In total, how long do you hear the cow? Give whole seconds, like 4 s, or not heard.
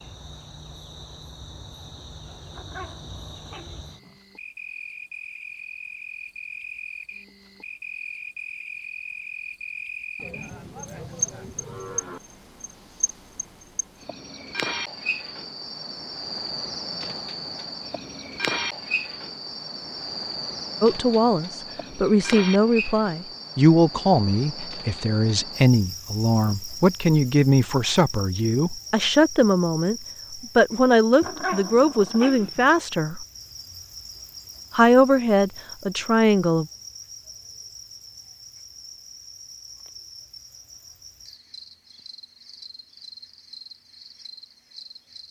2 s.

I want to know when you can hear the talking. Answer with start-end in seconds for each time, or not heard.
20.8-33.2, 34.7-36.6.